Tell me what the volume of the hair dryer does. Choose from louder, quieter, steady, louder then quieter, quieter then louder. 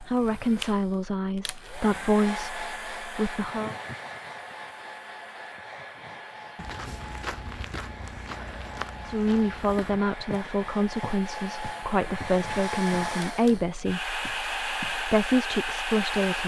quieter then louder.